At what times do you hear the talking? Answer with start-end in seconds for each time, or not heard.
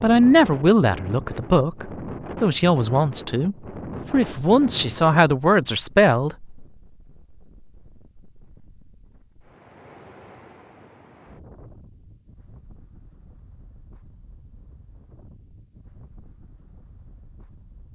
0.0-6.5.